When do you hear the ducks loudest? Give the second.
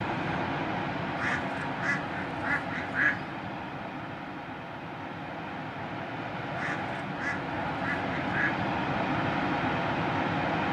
3 s.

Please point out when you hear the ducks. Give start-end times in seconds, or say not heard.
1.1-3.3, 6.5-8.7.